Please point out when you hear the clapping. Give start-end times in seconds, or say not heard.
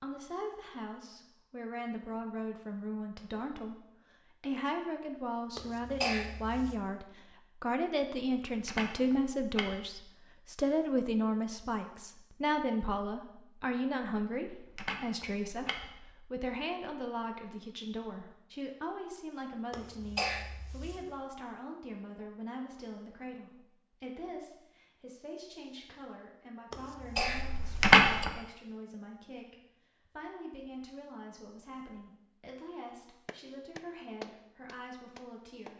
33.2-35.7.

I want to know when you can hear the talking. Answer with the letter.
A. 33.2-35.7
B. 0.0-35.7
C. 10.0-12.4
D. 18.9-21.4
B.